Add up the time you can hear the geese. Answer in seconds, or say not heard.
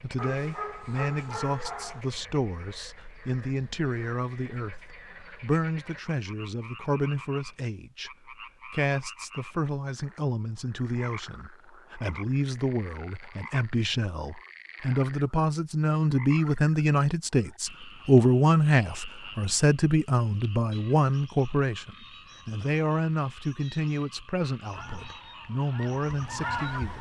2 s.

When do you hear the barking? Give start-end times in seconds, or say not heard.
0.1-2.0.